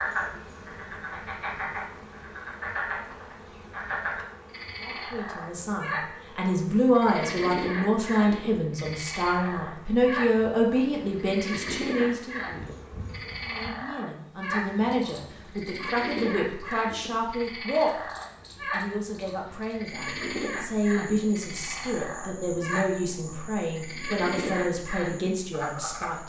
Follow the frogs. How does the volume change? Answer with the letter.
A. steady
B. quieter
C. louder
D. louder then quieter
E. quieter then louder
A.